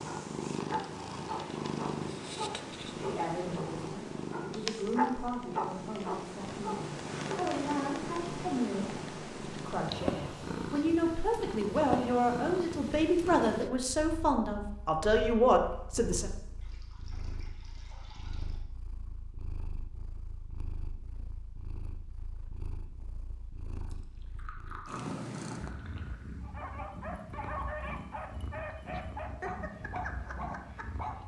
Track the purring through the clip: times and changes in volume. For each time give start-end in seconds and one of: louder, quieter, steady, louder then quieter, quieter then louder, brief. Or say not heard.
0.0-31.2 quieter then louder.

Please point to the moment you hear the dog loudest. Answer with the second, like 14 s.
5 s.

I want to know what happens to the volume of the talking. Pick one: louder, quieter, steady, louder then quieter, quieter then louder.
louder.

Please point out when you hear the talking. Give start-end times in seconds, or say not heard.
3.0-16.3.